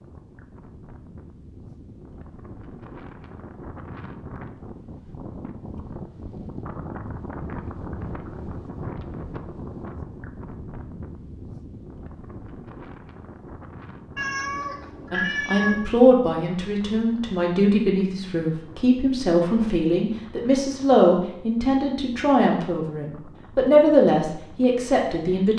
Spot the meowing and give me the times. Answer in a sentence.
The meowing can be heard from 14.2 to 15.8 s.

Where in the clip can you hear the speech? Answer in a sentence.
You can hear the speech from 15.1 to 25.5 s.